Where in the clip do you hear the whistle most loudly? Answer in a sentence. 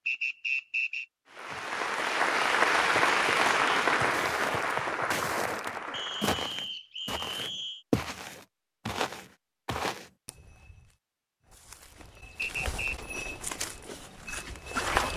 The volume of the whistle peaks at 1 second.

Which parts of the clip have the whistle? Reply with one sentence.
You can hear the whistle from 0.1 to 1.1 s, from 5.9 to 7.8 s and from 12.3 to 12.9 s.